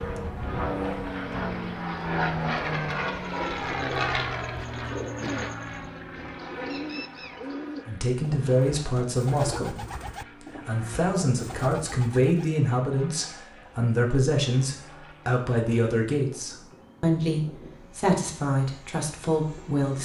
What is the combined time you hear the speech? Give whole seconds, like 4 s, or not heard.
12 s.